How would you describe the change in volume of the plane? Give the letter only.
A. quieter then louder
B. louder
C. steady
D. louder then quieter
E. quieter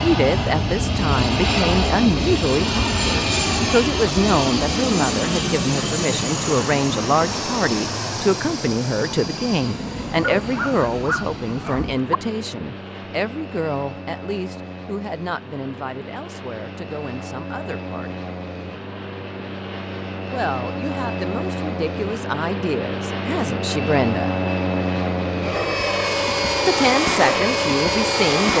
A.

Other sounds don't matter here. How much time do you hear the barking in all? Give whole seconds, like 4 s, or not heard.
2 s.